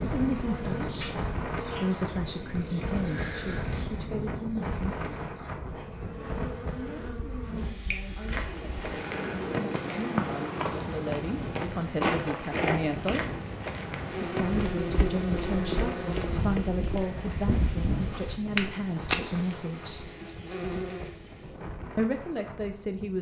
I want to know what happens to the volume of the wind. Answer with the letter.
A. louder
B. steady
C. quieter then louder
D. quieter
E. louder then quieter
D.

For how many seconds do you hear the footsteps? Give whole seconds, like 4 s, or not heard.
11 s.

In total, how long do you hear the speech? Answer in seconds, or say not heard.
19 s.